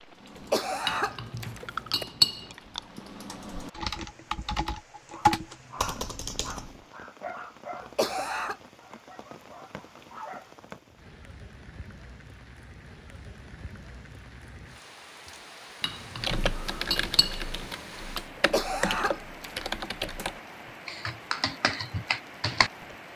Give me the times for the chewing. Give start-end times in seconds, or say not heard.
not heard.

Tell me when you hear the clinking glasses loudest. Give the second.
2 s.